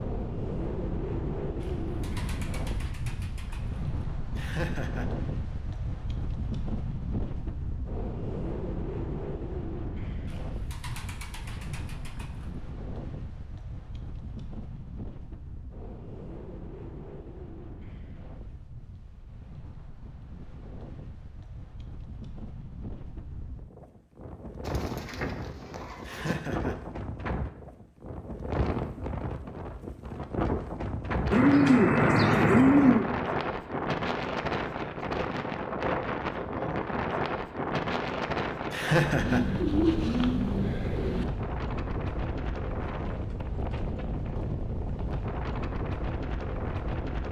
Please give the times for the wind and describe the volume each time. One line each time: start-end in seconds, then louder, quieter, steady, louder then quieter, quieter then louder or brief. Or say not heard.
0.0-47.2 quieter then louder.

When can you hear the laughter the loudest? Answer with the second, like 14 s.
39 s.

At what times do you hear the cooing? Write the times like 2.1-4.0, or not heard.
1.6-4.0, 10.3-12.4, 24.6-26.4, 31.3-33.0, 39.2-41.2.